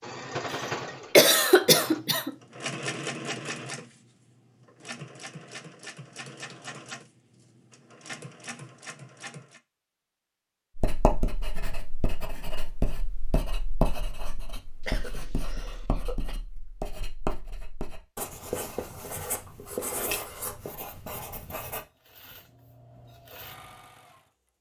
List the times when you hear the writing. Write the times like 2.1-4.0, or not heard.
10.8-21.9.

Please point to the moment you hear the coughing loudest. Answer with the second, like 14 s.
1 s.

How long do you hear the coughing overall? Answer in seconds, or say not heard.
3 s.